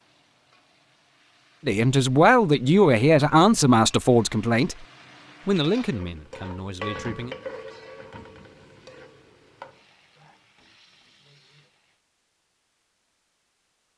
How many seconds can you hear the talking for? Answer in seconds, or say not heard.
5 s.